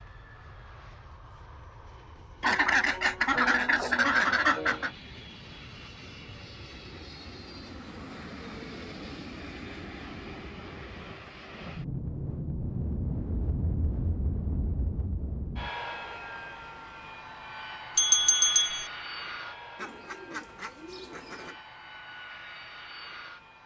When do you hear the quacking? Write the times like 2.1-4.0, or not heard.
2.4-4.9, 19.8-21.6.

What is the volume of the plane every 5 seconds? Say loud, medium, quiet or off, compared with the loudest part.
quiet, medium, loud, loud, medium.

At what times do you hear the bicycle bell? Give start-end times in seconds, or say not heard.
17.9-18.9.